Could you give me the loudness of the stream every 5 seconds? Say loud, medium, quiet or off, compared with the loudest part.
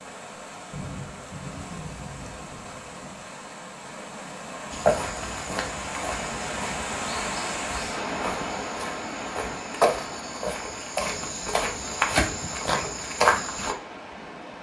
medium, loud, medium.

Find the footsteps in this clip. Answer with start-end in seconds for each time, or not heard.
4.7-13.8.